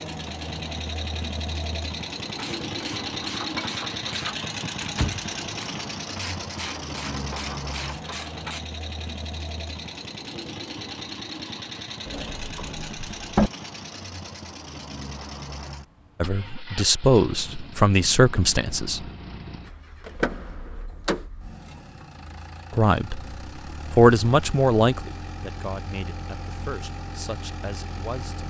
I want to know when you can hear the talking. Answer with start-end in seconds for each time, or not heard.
16.2-19.1, 22.7-23.2, 23.9-28.4.